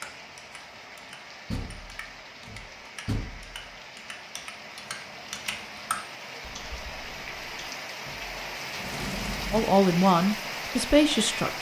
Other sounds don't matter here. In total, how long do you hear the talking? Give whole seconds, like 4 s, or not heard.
2 s.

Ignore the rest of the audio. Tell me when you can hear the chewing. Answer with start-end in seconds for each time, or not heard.
not heard.